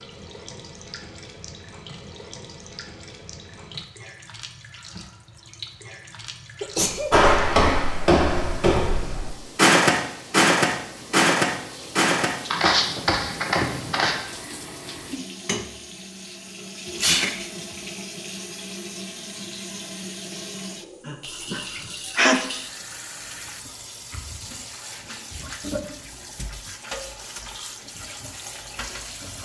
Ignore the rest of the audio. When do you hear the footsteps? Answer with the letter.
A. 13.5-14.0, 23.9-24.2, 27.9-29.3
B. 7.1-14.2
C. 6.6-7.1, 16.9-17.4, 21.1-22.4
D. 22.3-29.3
B.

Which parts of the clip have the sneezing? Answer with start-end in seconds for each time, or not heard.
6.6-7.1, 16.9-17.4, 21.1-22.4.